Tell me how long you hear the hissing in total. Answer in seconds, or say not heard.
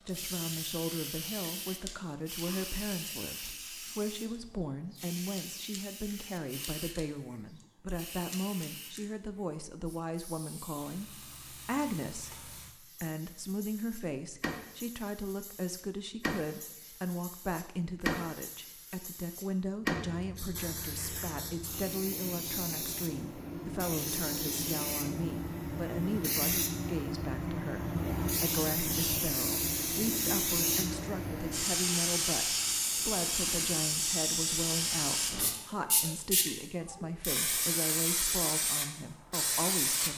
40 s.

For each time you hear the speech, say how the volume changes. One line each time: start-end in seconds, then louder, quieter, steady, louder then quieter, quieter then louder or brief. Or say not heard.
0.1-40.1 steady.